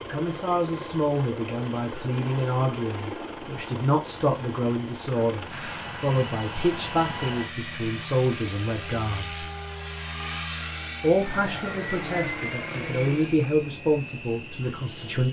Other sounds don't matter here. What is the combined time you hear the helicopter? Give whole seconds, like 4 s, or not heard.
15 s.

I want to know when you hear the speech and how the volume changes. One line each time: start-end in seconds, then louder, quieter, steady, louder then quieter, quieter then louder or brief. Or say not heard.
0.0-9.4 steady
11.0-15.2 louder then quieter.